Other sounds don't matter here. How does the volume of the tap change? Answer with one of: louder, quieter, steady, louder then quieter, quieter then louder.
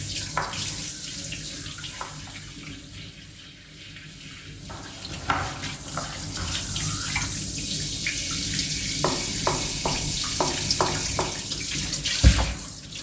quieter then louder.